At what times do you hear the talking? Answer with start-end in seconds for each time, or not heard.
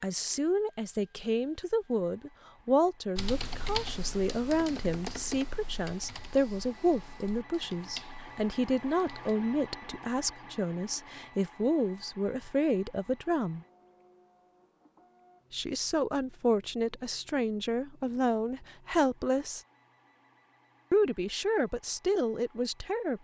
0.0-13.6, 15.5-19.6, 20.9-23.2.